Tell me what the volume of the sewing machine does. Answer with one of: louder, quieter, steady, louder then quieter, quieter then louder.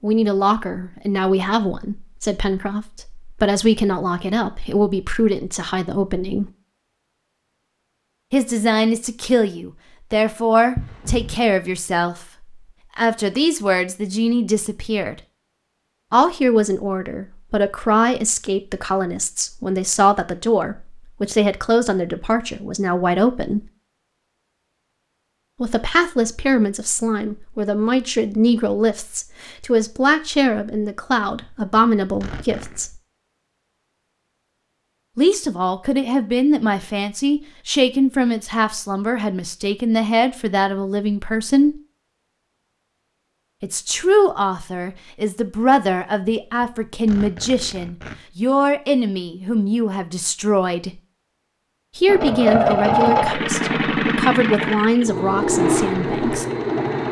quieter.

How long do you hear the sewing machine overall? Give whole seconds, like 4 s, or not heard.
5 s.